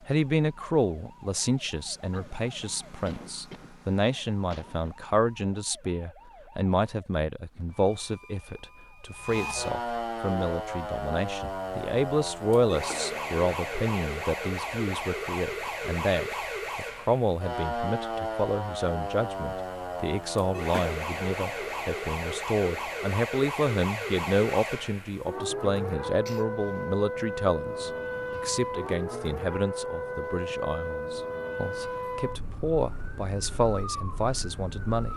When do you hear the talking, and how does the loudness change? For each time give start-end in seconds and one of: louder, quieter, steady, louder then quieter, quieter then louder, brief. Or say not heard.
0.1-35.1 steady.